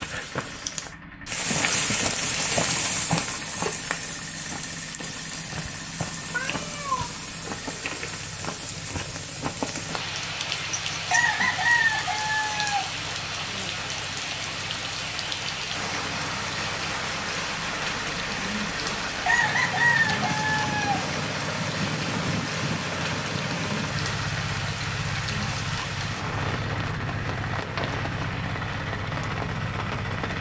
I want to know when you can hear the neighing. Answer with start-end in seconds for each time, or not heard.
not heard.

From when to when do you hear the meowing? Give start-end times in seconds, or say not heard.
6.3-7.1.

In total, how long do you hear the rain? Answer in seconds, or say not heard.
30 s.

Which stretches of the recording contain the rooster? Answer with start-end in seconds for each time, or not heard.
11.1-12.8, 19.2-21.0.